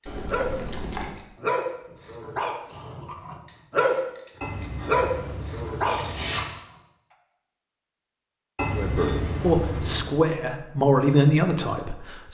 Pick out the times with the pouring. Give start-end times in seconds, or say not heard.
0.1-1.1, 4.4-6.4, 8.6-10.1.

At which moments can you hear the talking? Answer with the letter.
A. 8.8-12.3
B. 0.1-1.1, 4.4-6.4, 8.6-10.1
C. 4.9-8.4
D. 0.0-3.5
A.